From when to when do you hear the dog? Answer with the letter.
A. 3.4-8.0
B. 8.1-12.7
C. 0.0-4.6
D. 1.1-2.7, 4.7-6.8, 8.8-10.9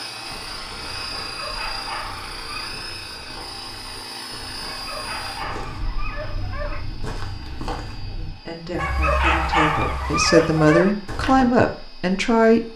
D.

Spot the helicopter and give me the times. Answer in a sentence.
The helicopter can be heard from 0.0 to 12.7 s.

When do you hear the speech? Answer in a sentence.
The speech can be heard from 8.1 to 12.7 s.